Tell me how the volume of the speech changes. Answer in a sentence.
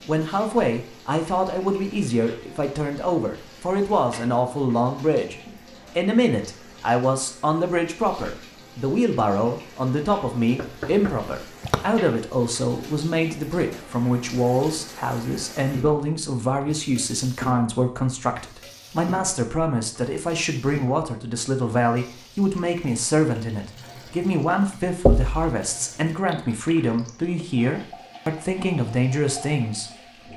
The loudness of the speech stays about the same.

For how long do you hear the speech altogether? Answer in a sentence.
You can hear the speech for 30 seconds altogether.